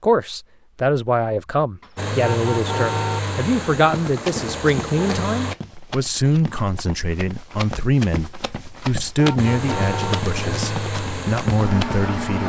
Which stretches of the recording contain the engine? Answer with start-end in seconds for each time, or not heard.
1.9-5.5, 9.3-12.4.